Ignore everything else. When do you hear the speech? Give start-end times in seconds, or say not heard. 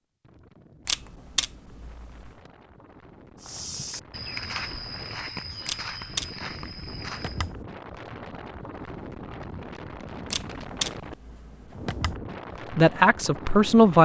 12.7-14.0.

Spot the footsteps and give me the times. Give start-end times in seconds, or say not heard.
3.4-7.5.